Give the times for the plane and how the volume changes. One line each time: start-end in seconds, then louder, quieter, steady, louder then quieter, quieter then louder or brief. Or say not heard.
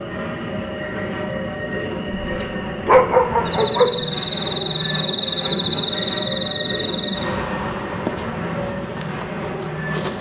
0.0-10.1 steady.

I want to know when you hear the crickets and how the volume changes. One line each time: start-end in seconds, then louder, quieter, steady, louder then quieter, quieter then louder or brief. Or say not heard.
0.0-10.1 louder then quieter.